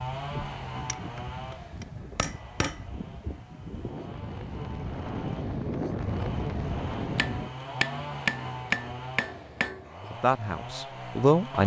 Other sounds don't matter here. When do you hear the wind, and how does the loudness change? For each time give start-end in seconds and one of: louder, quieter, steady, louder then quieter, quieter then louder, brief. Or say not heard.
0.0-7.5 louder.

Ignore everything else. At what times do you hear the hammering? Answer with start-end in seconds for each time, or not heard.
0.8-2.8, 7.2-9.8.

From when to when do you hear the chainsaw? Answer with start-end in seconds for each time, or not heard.
0.0-11.6.